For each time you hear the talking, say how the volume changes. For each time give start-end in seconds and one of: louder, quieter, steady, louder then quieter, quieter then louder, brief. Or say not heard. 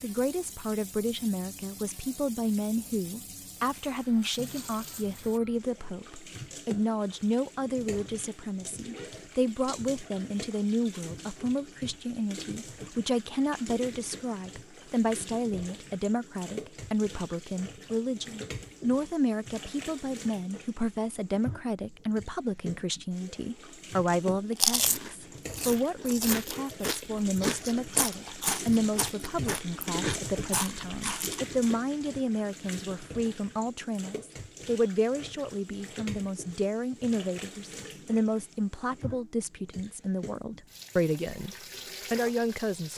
0.0-42.9 steady.